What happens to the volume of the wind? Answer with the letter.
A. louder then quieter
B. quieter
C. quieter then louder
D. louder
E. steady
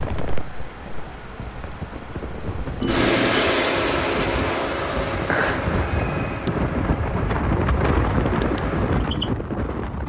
D.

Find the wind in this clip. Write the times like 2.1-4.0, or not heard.
0.0-10.0.